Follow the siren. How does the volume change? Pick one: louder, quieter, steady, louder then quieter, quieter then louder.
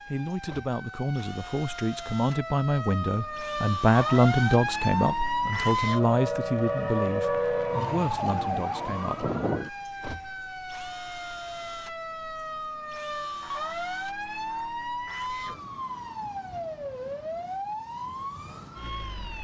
louder then quieter.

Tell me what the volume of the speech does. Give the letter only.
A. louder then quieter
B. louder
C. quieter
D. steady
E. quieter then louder
A.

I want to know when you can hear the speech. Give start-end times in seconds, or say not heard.
0.1-9.3.